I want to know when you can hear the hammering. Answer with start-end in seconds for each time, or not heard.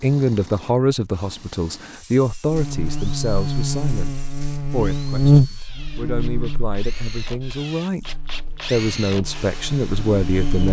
not heard.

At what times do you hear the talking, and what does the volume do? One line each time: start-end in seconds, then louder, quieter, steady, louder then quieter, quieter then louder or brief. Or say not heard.
0.0-10.6 quieter then louder.